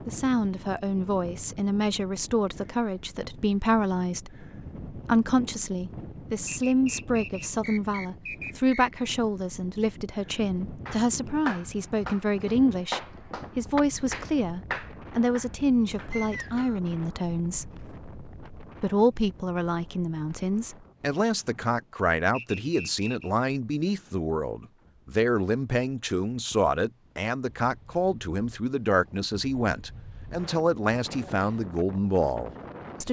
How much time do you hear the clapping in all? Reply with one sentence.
You can hear the clapping for 6 seconds altogether.